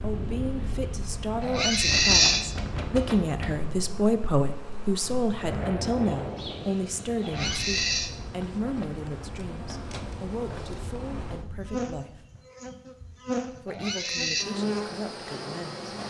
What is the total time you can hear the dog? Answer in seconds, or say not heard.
not heard.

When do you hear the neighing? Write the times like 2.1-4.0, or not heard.
1.4-2.5, 7.2-8.1, 13.7-14.4.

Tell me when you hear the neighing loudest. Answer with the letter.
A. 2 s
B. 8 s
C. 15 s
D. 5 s
A.